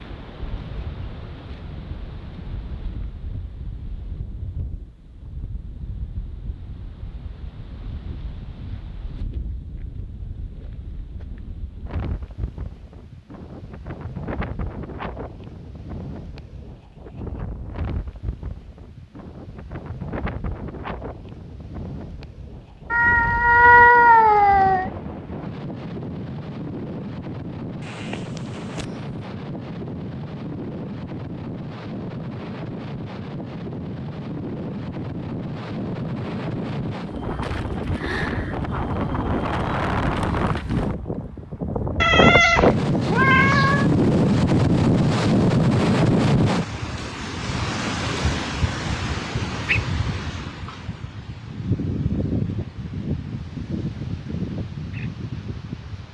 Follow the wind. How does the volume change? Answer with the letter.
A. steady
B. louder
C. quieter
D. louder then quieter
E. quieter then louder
B.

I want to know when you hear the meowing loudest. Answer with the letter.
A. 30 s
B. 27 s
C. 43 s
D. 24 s
D.